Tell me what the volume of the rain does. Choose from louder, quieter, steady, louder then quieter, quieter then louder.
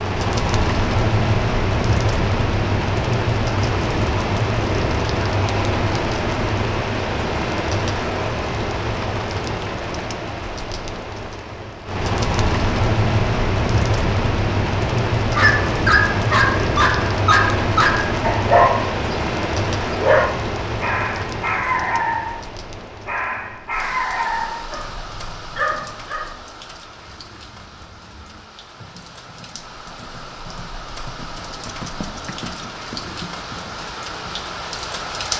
quieter.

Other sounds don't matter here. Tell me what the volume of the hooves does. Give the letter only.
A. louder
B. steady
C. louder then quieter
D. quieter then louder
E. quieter
A.